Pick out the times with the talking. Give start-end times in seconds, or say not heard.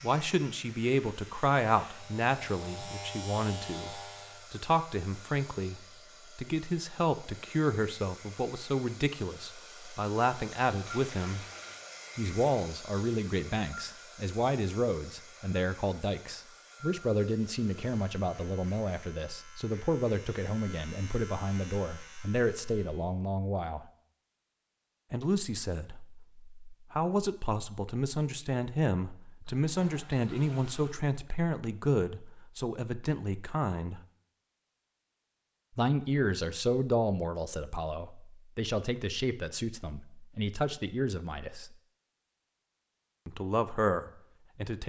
0.0-11.4, 12.2-23.9, 25.1-34.0, 35.8-41.8, 43.2-44.8.